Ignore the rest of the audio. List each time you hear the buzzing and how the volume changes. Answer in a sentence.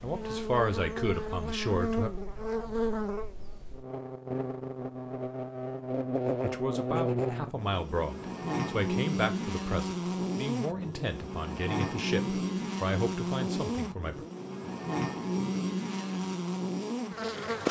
You can hear the buzzing from 0.0 to 17.6 s, at a steady volume.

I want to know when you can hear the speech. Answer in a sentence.
The speech can be heard from 0.0 to 2.1 s and from 6.4 to 14.2 s.